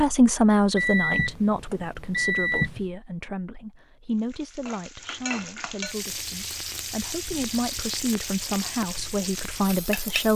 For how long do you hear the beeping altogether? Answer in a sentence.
The beeping can be heard for 2 seconds in total.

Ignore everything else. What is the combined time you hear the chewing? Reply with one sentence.
You can't hear the chewing here.